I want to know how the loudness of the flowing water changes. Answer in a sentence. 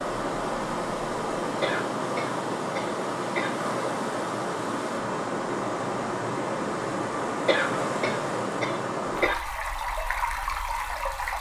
The loudness of the flowing water stays about the same.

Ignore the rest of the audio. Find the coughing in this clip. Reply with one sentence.
You can hear the coughing from 1.6 to 3.5 s and from 7.5 to 9.3 s.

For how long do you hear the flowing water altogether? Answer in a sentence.
The flowing water can be heard for 11 seconds in total.